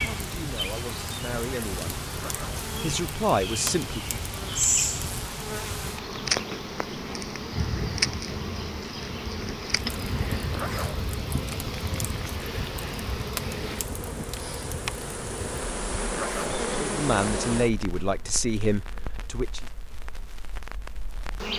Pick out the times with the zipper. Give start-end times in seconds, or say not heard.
2.1-2.6, 10.5-11.0, 16.1-16.6.